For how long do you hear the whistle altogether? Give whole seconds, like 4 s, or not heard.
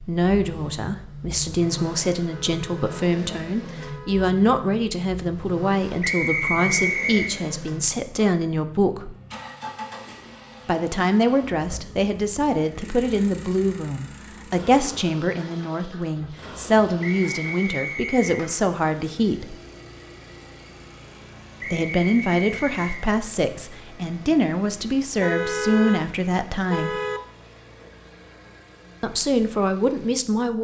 4 s.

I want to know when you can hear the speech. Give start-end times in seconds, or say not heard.
0.0-9.2, 10.7-19.6, 21.7-26.9, 29.0-30.5.